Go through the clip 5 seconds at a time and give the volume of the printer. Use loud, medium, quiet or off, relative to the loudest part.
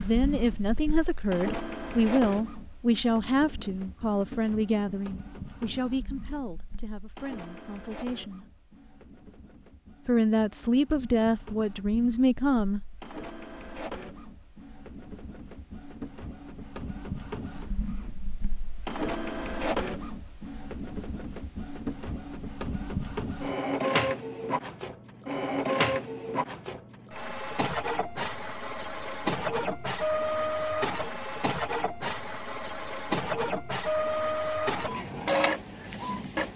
medium, quiet, quiet, medium, loud, loud, loud, loud.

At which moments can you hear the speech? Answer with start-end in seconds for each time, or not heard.
0.0-8.4, 10.1-12.8.